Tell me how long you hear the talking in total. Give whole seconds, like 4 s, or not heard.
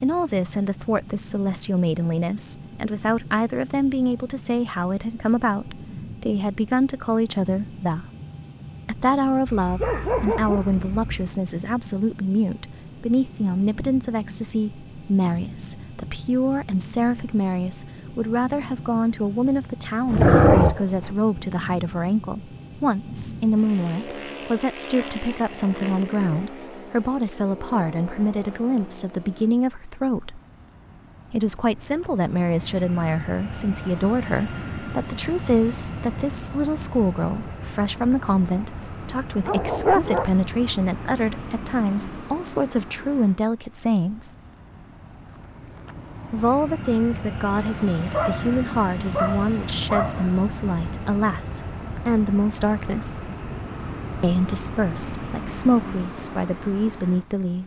53 s.